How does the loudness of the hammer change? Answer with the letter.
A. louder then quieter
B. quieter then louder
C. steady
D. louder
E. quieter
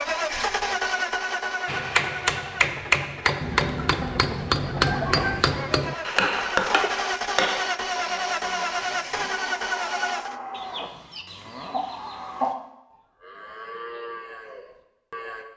C.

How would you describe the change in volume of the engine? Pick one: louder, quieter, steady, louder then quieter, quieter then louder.
quieter then louder.